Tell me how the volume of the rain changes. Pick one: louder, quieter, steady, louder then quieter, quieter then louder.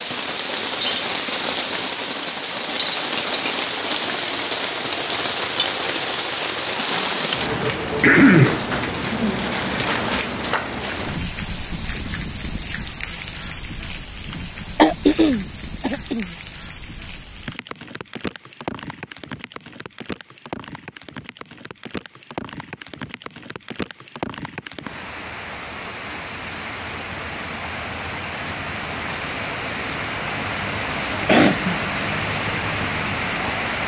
quieter then louder.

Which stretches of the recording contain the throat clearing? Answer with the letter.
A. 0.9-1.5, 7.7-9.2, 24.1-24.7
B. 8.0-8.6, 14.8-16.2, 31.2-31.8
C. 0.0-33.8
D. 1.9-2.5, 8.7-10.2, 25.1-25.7
B.